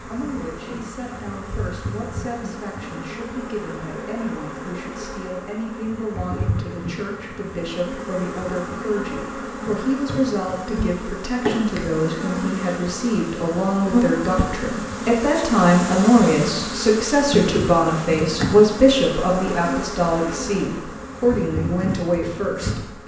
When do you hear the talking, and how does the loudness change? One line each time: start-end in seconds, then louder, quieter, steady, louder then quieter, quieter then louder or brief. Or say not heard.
0.0-23.0 louder.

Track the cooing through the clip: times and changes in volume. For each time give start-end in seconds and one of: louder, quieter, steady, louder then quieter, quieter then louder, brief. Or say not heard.
not heard.